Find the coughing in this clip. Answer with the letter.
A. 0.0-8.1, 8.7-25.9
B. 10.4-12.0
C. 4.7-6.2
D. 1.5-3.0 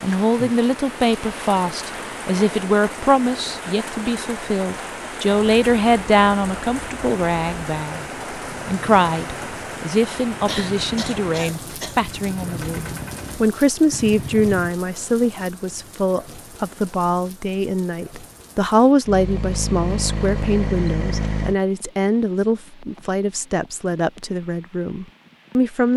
B.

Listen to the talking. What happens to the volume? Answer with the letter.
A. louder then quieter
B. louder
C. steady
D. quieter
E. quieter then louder
C.